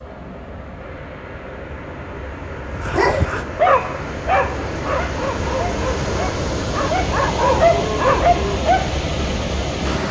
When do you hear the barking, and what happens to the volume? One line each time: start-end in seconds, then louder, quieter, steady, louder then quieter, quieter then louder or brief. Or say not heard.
2.6-8.8 quieter then louder.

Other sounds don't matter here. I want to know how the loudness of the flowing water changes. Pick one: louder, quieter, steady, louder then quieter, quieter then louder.
louder.